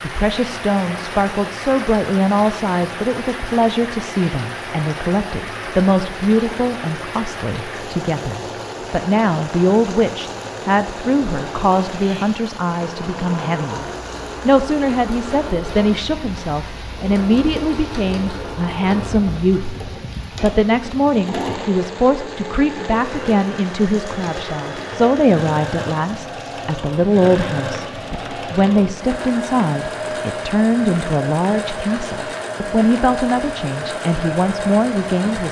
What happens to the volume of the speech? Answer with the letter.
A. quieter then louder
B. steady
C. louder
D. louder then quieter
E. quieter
B.